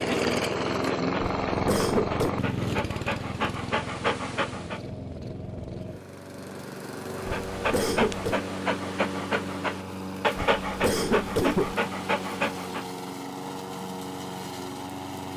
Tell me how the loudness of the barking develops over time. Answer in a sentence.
The volume of the barking goes up.